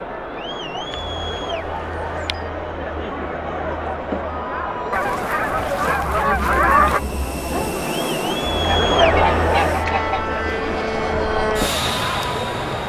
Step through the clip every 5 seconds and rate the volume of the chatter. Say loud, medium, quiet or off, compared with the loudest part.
medium, loud, loud.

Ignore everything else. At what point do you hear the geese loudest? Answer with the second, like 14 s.
7 s.